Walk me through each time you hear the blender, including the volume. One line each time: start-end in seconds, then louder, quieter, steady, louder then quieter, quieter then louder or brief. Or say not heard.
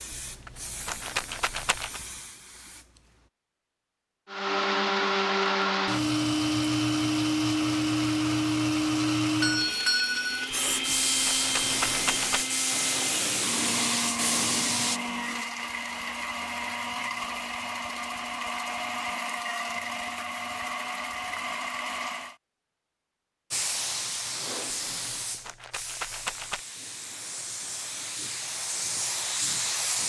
4.2-22.4 quieter.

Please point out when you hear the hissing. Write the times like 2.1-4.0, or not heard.
0.0-3.1, 10.5-15.0, 23.5-30.0.